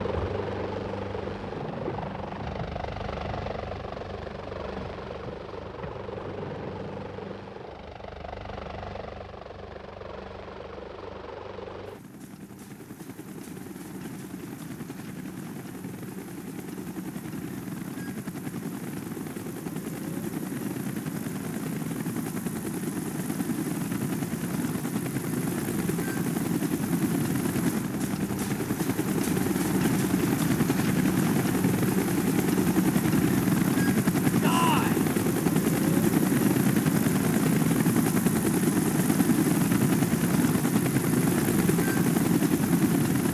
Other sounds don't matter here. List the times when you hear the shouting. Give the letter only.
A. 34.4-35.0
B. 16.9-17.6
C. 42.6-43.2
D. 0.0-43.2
A.